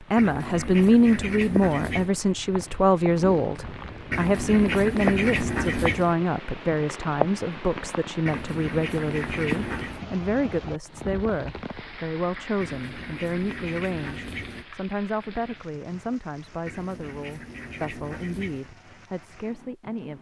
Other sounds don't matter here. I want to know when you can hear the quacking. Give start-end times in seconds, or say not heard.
0.1-2.1, 4.1-6.2, 8.2-10.1, 12.6-14.7, 16.6-18.7.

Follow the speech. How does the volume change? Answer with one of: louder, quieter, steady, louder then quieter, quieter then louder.
quieter.